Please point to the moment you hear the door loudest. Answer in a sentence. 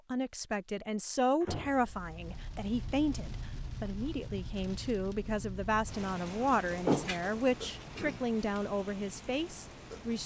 The volume of the door peaks at 7 seconds.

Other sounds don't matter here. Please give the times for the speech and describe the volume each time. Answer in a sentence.
You can hear the speech from 0.1 to 10.2 s, at a steady volume.